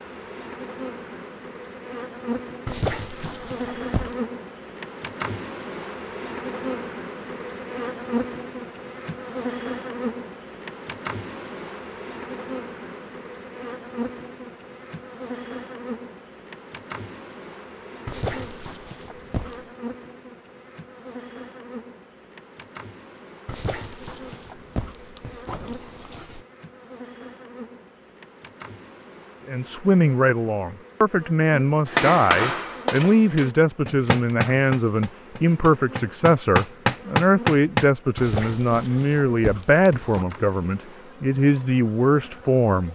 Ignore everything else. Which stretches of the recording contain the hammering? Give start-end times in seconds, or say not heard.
31.9-37.9.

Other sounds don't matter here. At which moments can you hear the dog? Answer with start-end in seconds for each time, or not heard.
2.6-4.2, 18.1-19.6, 23.4-26.4, 38.1-40.2.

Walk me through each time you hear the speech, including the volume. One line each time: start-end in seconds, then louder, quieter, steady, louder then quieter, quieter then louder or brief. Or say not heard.
29.4-42.9 steady.